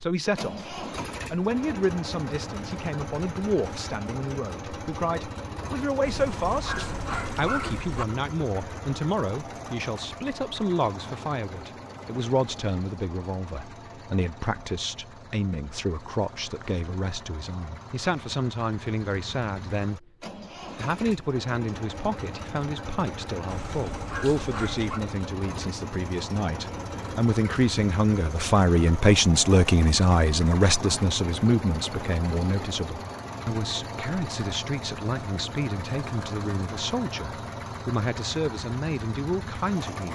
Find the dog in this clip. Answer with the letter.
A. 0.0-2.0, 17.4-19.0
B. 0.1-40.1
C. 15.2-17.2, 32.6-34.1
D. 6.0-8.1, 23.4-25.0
D.